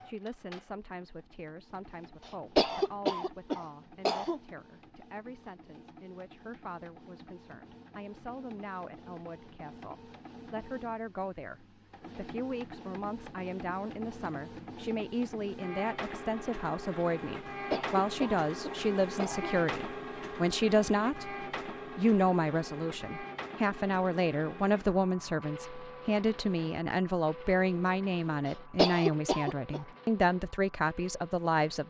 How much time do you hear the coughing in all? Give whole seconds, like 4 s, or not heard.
6 s.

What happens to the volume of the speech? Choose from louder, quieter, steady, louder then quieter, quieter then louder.
louder.